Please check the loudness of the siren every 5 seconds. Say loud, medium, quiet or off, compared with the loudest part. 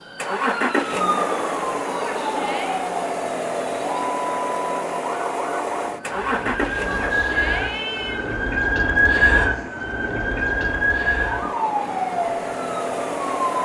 medium, loud, loud.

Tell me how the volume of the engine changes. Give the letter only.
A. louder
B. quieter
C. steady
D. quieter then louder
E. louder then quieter
D.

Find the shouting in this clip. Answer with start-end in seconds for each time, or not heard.
1.9-2.9, 6.8-8.3.